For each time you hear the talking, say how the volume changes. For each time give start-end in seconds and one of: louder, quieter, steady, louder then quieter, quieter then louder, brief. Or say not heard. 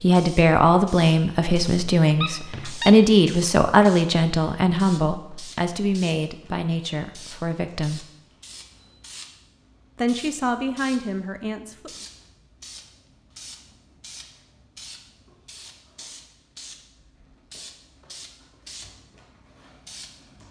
0.0-8.1 quieter
9.9-11.9 brief.